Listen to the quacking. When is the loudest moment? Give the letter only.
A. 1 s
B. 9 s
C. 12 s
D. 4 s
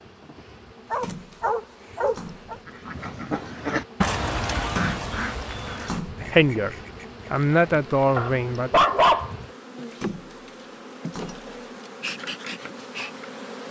D.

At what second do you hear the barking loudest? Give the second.
9 s.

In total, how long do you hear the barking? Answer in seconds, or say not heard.
3 s.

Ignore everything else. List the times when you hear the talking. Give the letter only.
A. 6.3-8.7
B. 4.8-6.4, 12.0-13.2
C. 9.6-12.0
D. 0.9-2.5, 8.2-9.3
A.